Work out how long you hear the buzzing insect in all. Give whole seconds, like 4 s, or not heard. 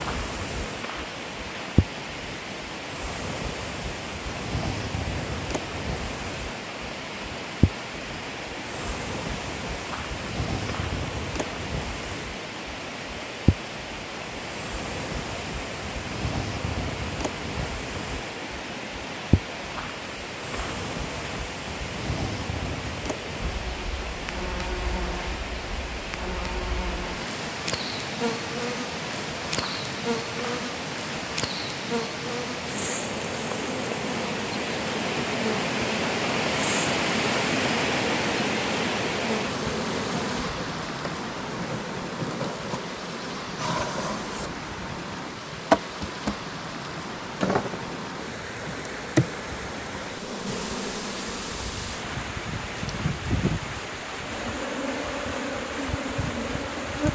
57 s.